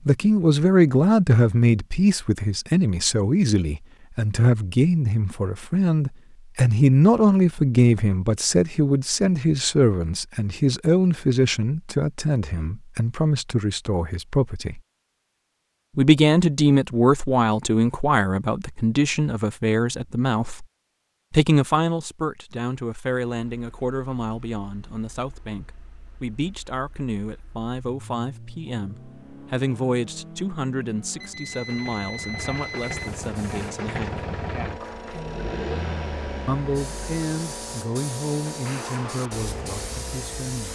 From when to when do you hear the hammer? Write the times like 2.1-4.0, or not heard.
not heard.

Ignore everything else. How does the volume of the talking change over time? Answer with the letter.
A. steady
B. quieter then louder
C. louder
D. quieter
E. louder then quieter
D.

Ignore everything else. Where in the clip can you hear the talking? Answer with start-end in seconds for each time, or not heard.
0.1-14.8, 15.9-20.6, 21.3-34.2, 36.5-40.6.